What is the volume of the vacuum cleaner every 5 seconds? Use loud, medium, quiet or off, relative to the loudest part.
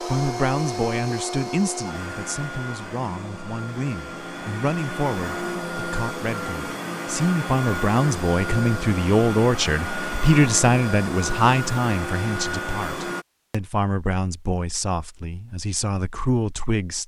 loud, loud, loud, off.